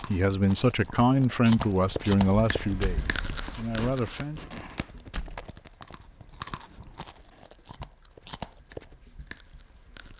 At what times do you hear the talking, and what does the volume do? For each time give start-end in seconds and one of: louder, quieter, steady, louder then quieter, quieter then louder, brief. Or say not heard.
0.1-4.4 quieter.